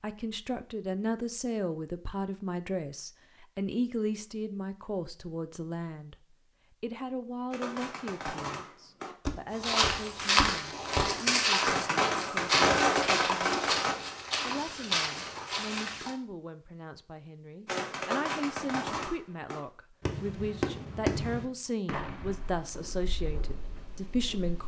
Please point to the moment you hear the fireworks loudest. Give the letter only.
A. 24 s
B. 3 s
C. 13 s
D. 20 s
C.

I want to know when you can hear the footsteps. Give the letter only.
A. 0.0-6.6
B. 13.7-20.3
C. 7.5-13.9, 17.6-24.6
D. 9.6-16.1
D.